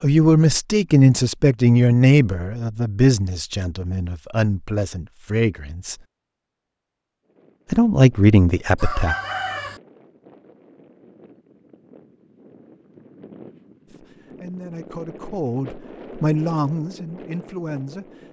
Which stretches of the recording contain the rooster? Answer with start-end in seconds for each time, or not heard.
8.8-9.8.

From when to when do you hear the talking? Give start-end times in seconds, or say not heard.
0.0-6.0, 7.7-9.2, 13.9-18.2.